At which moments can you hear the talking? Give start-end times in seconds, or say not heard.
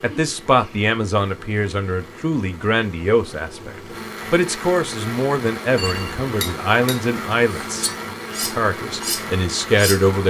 0.0-7.9, 8.5-10.2.